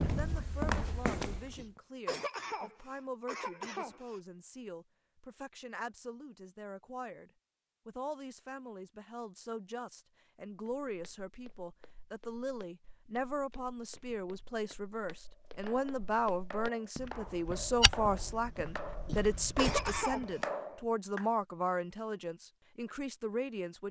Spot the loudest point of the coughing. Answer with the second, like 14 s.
20 s.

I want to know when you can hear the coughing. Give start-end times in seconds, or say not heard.
1.6-4.2, 19.1-20.4.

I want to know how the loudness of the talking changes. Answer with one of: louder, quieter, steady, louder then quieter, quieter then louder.
louder.